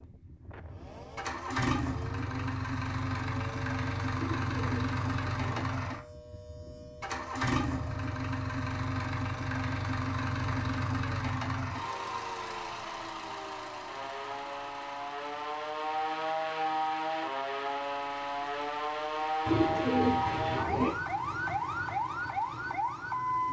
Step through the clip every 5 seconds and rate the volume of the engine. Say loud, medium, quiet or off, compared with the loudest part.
loud, loud, loud, quiet, quiet.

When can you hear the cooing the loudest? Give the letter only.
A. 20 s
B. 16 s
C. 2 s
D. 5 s
A.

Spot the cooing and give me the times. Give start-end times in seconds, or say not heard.
4.2-5.6, 19.4-20.9.